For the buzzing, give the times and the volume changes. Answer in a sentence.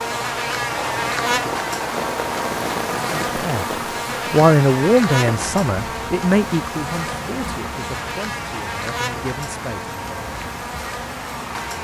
The buzzing can be heard from 0.0 to 11.7 s, getting quieter.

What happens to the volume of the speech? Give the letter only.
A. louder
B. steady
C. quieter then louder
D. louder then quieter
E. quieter
E.